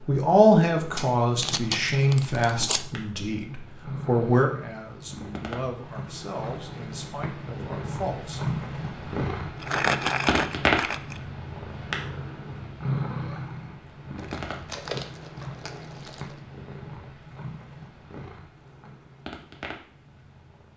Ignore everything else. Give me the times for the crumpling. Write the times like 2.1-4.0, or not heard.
0.9-2.9, 9.6-11.2, 14.2-16.4.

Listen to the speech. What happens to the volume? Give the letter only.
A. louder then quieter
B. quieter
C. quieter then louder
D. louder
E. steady
B.